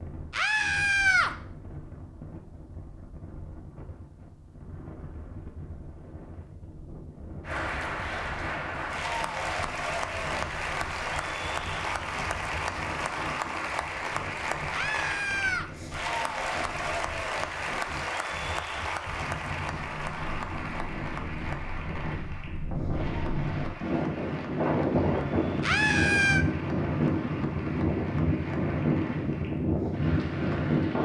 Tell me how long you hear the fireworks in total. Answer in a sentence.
You can't hear the fireworks here.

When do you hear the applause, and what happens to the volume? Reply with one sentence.
You can hear the applause from 7.5 to 31.0 s, getting quieter.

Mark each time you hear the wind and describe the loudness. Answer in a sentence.
You can hear the wind from 0.0 to 31.0 s, getting louder.